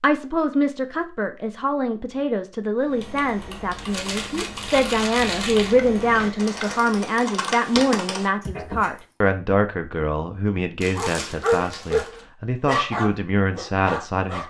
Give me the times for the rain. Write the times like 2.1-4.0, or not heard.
not heard.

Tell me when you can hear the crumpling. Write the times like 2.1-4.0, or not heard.
3.8-5.8, 10.8-12.1.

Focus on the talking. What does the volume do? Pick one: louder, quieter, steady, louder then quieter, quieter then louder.
steady.